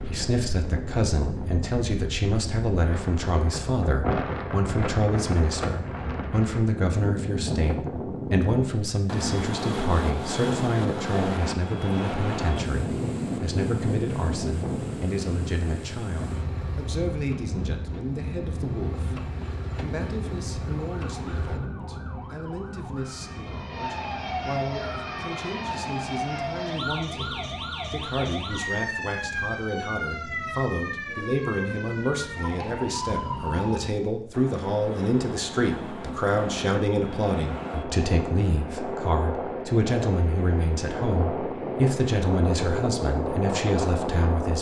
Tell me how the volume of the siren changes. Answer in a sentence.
The volume of the siren goes up.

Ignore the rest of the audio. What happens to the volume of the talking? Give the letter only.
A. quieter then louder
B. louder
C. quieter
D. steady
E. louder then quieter
A.